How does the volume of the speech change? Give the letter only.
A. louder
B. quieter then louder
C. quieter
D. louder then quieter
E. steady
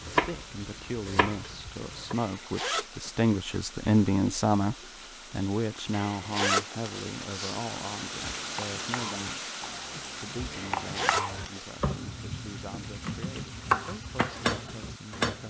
D.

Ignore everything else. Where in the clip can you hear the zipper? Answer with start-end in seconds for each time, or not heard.
2.1-2.9, 5.9-7.6, 10.5-11.7.